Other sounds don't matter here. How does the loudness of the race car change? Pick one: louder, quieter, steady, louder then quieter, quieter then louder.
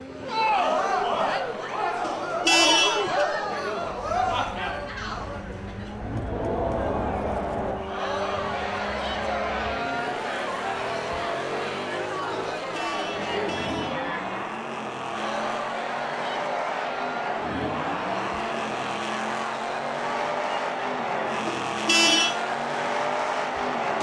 louder.